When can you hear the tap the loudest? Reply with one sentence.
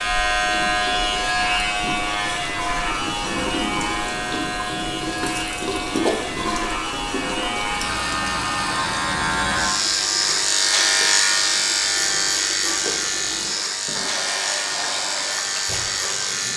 The loudest moment of the tap is at 6 seconds.